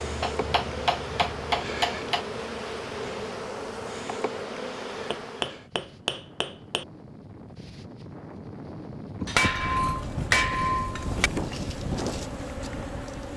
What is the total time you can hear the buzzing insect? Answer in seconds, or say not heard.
10 s.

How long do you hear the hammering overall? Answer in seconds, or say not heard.
6 s.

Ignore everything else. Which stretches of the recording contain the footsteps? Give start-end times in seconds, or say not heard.
not heard.